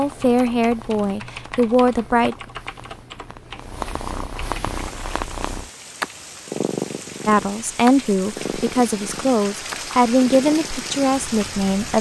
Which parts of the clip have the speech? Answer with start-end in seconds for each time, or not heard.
0.0-2.4, 7.2-11.9.